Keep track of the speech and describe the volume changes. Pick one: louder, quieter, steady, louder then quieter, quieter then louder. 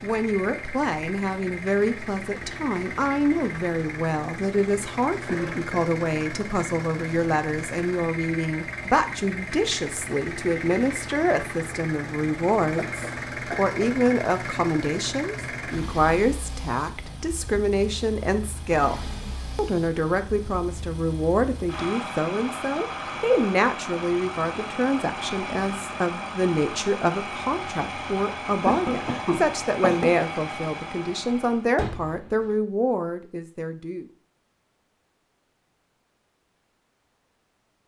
steady.